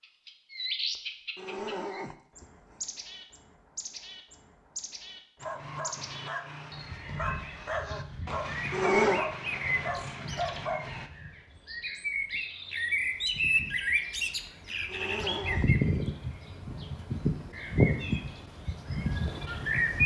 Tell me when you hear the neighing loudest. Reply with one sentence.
The volume of the neighing peaks at 9 seconds.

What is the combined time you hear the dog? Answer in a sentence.
You can hear the dog for 6 seconds altogether.